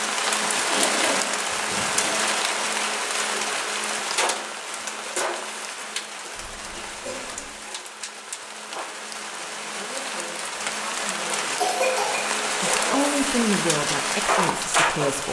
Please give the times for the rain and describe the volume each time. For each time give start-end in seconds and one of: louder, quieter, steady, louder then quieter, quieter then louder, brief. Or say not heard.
0.0-15.2 quieter then louder.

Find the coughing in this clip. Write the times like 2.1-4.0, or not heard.
0.7-2.1, 6.3-7.5, 11.6-12.2.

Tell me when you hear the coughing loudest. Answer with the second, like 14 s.
12 s.